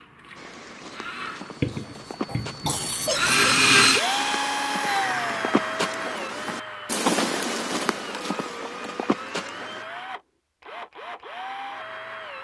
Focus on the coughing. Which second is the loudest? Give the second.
3 s.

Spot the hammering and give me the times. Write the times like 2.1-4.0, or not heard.
not heard.